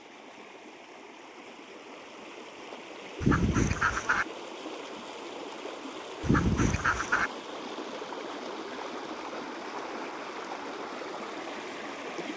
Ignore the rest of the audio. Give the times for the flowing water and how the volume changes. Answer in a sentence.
You can hear the flowing water from 0.0 to 12.3 s, getting louder.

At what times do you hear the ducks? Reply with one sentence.
You can hear the ducks from 3.2 to 4.2 s and from 6.2 to 7.3 s.